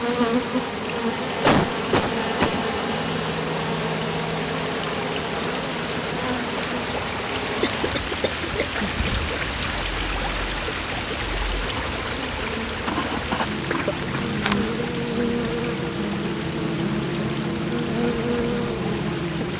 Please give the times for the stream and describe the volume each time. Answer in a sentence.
You can hear the stream from 0.0 to 19.5 s, getting louder then quieter.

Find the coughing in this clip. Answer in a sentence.
You can hear the coughing from 1.4 to 2.6 s, from 7.6 to 8.9 s and from 13.7 to 14.7 s.